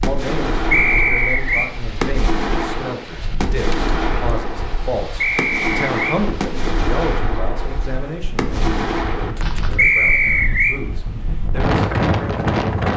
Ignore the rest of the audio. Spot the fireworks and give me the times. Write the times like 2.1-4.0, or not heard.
0.0-9.8.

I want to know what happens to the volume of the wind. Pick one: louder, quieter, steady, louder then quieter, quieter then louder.
louder.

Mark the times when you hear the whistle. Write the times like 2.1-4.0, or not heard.
0.7-1.7, 5.2-6.2, 9.8-10.8.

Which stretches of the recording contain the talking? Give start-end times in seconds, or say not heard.
0.0-8.6, 9.6-12.7.